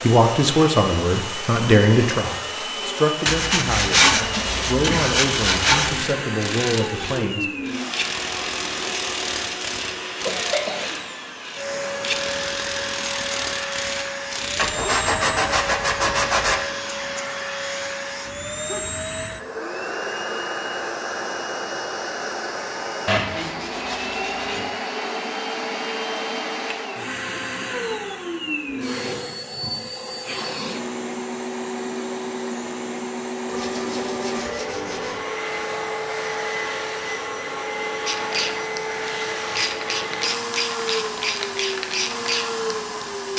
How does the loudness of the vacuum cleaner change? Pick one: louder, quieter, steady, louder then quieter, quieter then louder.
steady.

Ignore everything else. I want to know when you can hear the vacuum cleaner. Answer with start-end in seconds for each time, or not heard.
0.0-43.3.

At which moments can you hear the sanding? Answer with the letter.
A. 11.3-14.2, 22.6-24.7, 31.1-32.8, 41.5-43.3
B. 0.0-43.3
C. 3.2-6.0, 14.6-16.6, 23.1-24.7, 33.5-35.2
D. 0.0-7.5
C.